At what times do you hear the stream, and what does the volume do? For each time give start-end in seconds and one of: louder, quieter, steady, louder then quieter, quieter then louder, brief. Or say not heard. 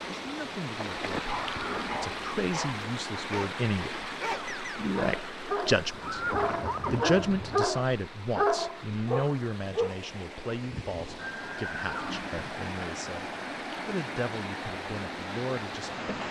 0.0-16.2 quieter then louder.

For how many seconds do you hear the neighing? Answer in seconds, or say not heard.
4 s.